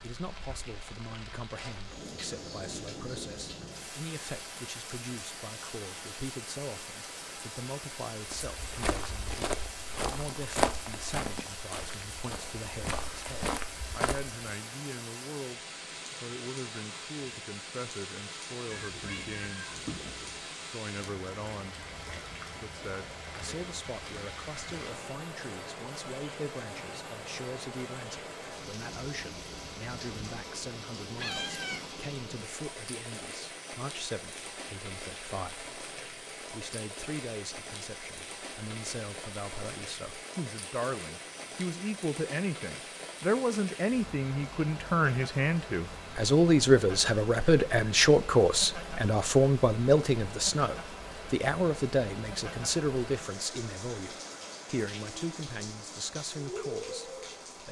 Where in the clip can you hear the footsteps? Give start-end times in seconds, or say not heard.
8.2-14.3.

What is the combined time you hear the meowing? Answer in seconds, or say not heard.
3 s.